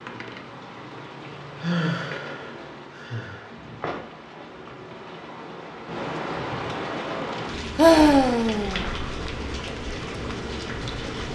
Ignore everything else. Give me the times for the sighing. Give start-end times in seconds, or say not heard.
1.6-3.5, 7.8-8.8.